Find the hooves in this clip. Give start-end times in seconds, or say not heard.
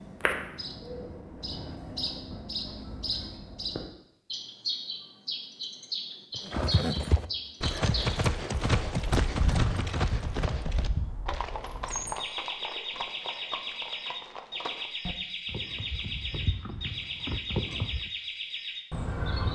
6.3-18.1.